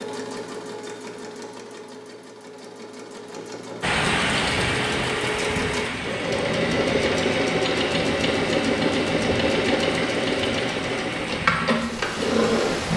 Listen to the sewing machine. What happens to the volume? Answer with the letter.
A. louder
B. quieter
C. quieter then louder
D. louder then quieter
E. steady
A.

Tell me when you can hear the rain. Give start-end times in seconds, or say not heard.
3.8-12.9.